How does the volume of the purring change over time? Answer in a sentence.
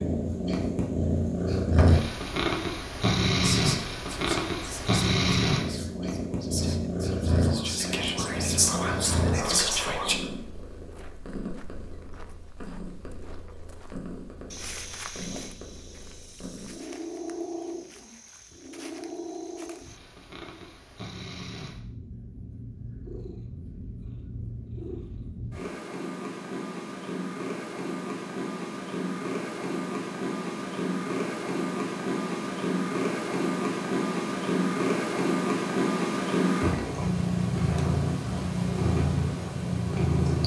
The volume of the purring goes down, then up.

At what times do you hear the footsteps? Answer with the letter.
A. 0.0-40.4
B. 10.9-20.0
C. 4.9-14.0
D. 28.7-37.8
B.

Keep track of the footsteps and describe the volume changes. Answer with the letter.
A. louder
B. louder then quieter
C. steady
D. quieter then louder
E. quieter
B.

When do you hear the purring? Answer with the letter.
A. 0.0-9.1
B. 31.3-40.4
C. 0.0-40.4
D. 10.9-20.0
C.